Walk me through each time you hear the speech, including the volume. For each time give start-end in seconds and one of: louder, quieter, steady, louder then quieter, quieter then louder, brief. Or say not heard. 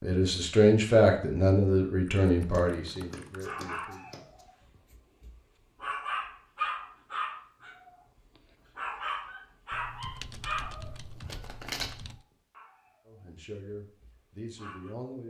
0.0-4.0 quieter
13.1-15.2 brief.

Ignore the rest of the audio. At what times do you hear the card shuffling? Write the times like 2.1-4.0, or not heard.
2.5-4.5, 10.8-11.9.